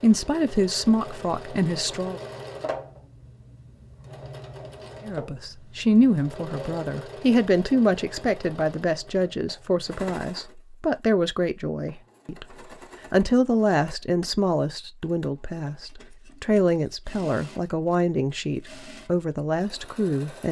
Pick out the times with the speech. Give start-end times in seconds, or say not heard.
0.0-2.2, 5.0-20.4.